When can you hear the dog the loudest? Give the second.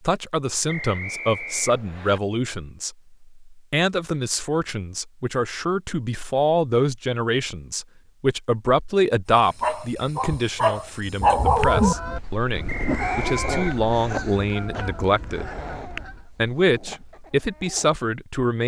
11 s.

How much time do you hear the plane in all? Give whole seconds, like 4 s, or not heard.
not heard.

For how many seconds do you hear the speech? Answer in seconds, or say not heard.
18 s.